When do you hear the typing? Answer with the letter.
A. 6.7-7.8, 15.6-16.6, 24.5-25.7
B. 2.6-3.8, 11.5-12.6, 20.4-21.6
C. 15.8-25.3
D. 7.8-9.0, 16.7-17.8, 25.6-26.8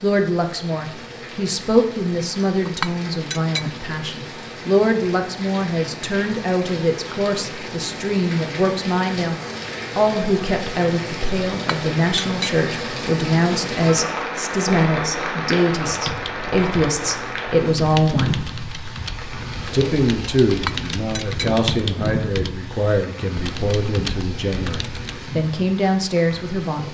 C.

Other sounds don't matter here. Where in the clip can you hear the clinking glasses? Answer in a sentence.
The clinking glasses can be heard from 2.6 to 3.8 s, from 11.5 to 12.6 s and from 20.4 to 21.6 s.